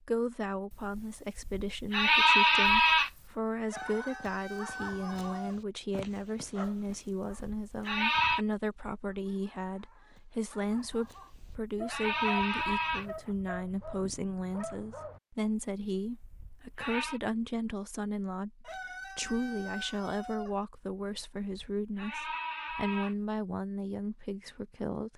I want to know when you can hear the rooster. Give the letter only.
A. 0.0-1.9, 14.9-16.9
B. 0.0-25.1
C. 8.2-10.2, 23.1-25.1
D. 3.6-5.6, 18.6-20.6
D.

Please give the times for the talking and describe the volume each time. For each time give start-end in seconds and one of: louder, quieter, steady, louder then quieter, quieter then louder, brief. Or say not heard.
0.0-25.1 steady.